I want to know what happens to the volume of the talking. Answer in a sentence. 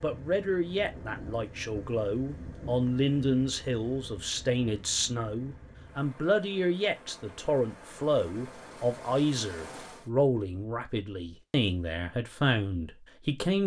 The loudness of the talking stays about the same.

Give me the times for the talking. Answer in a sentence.
You can hear the talking from 0.0 to 13.6 s.